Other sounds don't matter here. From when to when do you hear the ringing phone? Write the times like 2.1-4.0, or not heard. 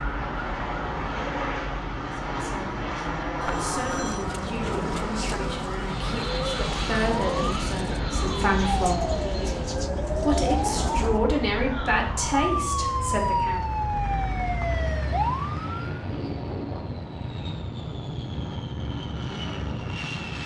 3.4-4.2.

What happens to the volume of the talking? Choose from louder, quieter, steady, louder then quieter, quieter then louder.
louder.